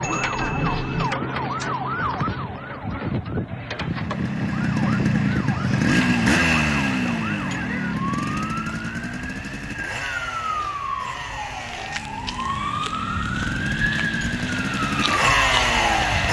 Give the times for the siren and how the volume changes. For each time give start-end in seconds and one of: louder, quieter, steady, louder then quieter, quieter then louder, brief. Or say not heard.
0.0-16.2 quieter then louder.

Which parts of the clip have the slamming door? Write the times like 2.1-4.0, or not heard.
not heard.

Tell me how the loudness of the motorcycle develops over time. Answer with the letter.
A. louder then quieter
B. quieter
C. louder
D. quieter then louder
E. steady
D.